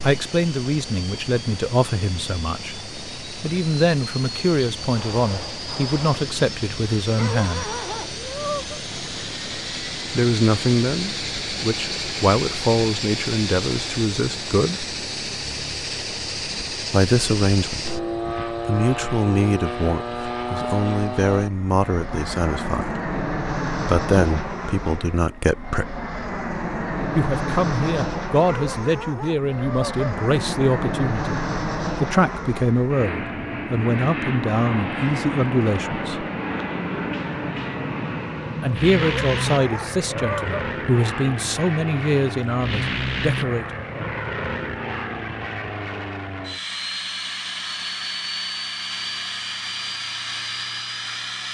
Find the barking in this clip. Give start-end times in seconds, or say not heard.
7.2-8.8, 28.4-30.1, 39.0-40.5.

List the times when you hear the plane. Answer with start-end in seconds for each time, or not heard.
0.0-51.4.